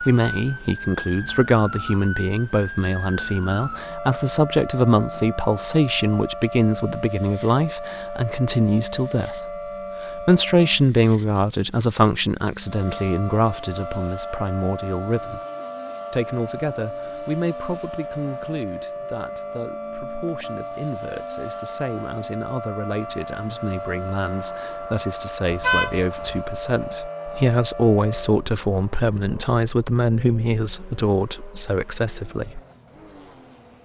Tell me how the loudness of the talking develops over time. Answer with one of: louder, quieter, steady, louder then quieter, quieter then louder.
quieter then louder.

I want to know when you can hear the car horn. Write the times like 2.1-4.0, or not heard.
25.5-26.4.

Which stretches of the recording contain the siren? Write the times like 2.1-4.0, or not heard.
0.0-10.8, 12.6-28.4.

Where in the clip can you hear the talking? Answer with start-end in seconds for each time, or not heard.
0.1-9.4, 10.1-15.4, 16.1-32.6.